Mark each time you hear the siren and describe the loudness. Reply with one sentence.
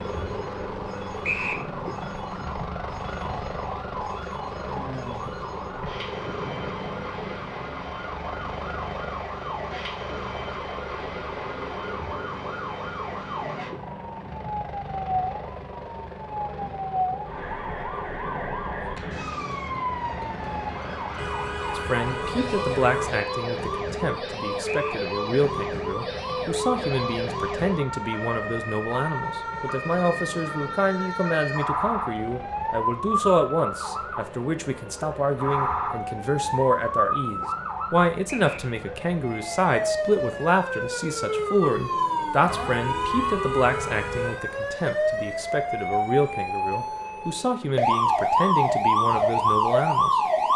The siren can be heard from 0.0 to 50.5 s, getting louder.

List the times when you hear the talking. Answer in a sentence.
The talking can be heard from 21.8 to 50.2 s.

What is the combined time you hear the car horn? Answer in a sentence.
The car horn can be heard for 4 seconds in total.